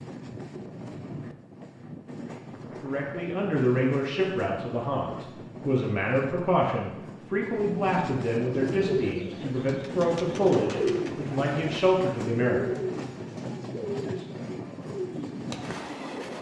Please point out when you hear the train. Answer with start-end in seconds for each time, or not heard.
0.0-16.3.